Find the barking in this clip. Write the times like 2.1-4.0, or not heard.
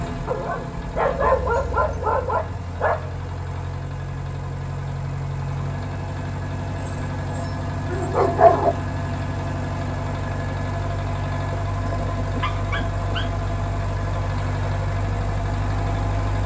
0.2-3.2, 6.8-8.7, 11.7-13.3.